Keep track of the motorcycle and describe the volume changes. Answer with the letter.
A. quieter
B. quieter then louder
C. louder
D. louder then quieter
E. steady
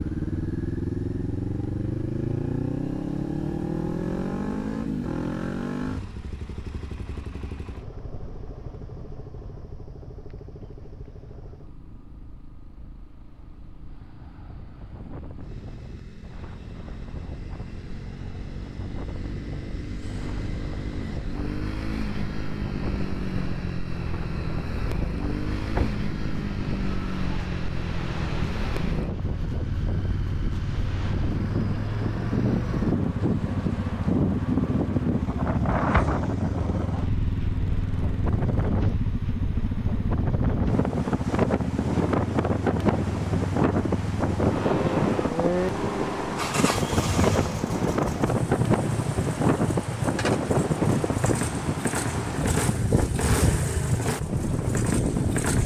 B.